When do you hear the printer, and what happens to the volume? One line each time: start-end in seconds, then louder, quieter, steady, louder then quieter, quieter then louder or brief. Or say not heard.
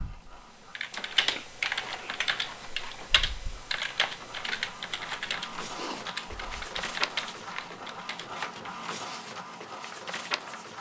0.0-10.7 louder.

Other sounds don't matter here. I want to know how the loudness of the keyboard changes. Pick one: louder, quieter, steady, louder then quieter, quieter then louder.
quieter.